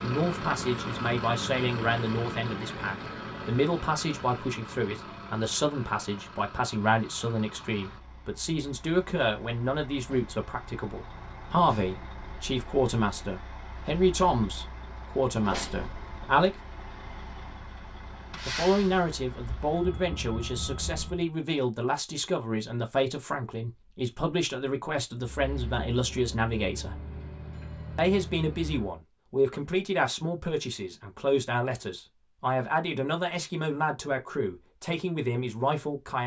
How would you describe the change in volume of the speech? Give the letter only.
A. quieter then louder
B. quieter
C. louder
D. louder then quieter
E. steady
E.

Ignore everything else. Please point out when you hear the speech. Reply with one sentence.
The speech can be heard from 0.0 to 16.6 s, from 18.4 to 27.0 s and from 27.9 to 36.2 s.